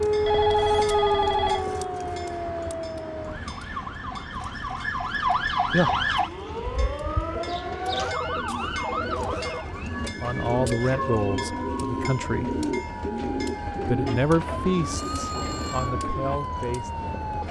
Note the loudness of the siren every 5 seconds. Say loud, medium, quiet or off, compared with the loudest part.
loud, loud, medium, medium.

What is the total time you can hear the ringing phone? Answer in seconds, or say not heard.
4 s.